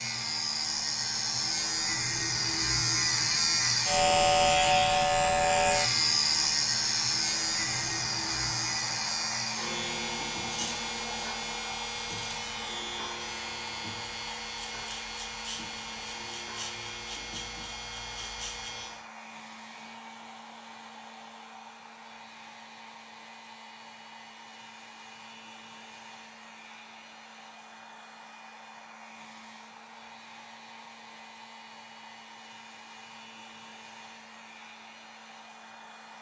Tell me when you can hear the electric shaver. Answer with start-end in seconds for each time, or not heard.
0.0-19.1.